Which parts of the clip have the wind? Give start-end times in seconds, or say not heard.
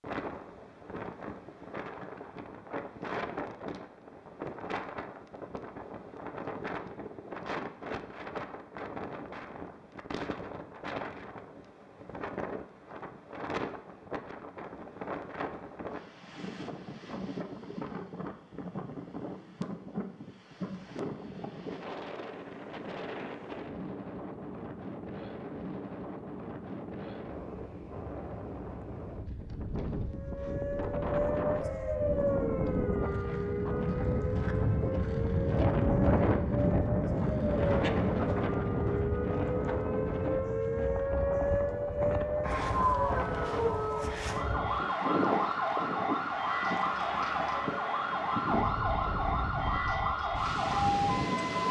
0.0-51.6.